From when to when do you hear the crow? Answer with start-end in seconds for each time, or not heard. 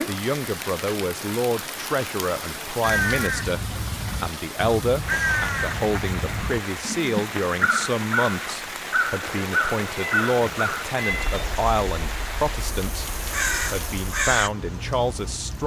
2.8-14.5.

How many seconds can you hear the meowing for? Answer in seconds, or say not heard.
2 s.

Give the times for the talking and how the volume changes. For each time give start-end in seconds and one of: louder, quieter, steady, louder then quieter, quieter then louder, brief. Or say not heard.
0.1-13.1 steady
13.7-15.6 brief.